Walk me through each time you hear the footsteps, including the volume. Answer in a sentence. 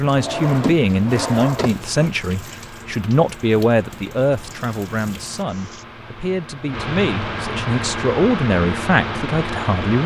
The footsteps can't be heard in this clip.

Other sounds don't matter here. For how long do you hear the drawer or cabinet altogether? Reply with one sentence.
You can hear the drawer or cabinet for 2 seconds altogether.